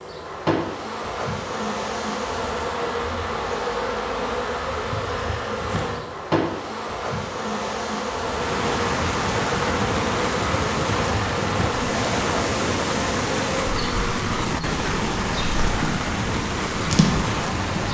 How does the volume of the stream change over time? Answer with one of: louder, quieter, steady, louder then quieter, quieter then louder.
steady.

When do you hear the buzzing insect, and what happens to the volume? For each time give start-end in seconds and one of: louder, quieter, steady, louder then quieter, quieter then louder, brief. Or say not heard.
0.0-17.8 steady.